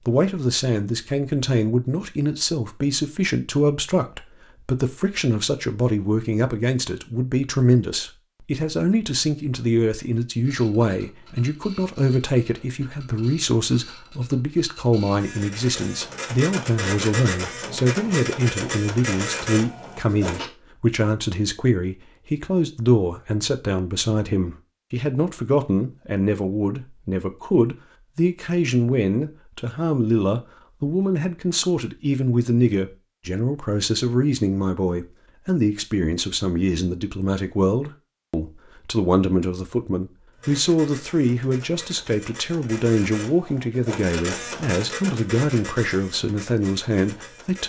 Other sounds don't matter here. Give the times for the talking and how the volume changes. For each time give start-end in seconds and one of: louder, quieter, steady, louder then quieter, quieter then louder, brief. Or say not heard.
0.1-47.6 steady.